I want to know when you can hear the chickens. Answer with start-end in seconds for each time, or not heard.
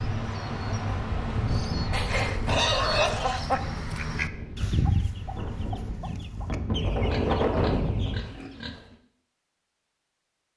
0.1-8.3.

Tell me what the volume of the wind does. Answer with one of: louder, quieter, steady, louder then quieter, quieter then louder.
quieter then louder.